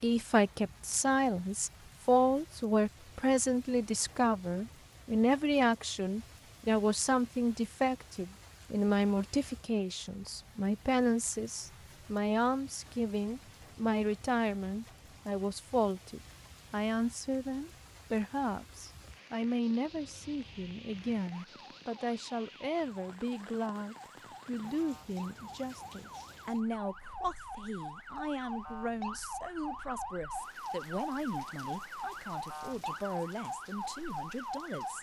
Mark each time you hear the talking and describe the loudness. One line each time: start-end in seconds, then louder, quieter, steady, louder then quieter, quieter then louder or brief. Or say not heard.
0.0-34.9 quieter.